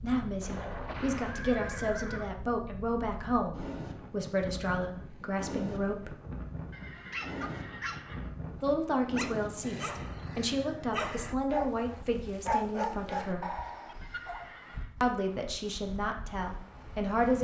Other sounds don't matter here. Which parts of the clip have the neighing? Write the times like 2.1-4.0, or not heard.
0.4-2.3, 6.7-8.4, 14.0-14.9.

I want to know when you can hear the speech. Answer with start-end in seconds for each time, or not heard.
0.0-6.2, 8.6-13.6, 15.0-17.3.